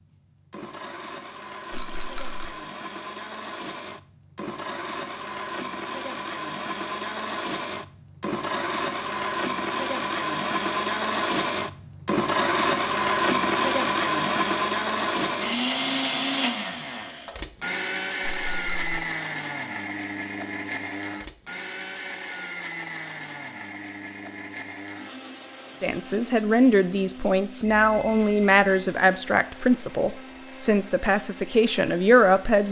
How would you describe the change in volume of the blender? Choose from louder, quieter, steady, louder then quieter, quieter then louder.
louder then quieter.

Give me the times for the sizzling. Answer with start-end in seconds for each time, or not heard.
not heard.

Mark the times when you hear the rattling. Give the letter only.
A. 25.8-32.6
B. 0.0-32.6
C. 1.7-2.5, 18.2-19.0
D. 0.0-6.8
C.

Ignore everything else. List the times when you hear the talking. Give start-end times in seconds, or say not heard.
25.8-32.6.